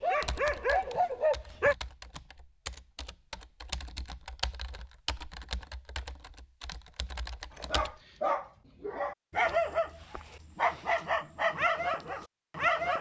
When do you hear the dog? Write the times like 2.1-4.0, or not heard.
0.0-1.8, 7.5-12.9.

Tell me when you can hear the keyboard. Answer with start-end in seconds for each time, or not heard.
0.2-8.0.